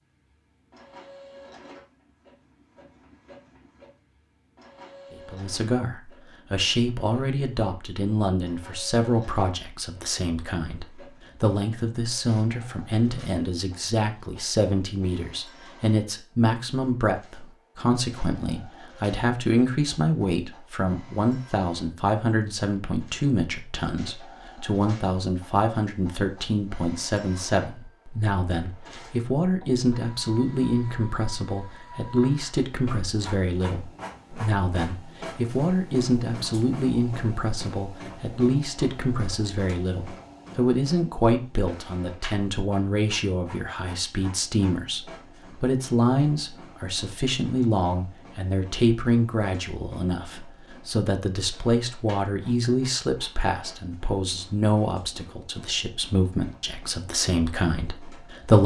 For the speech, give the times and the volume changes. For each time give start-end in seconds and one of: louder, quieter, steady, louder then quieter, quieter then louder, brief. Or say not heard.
5.2-58.6 steady.